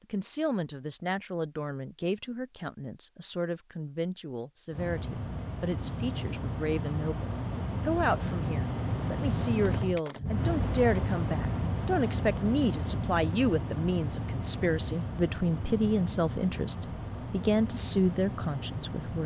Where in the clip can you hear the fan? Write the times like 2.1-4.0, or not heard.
4.7-19.2.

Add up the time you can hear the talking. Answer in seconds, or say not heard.
19 s.